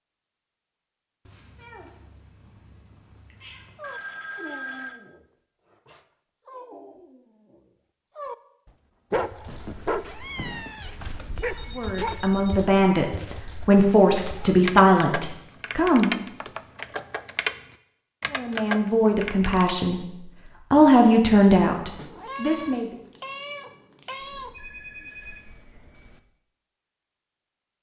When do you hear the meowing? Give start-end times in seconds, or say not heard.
1.2-3.9, 9.4-11.3, 21.9-24.6.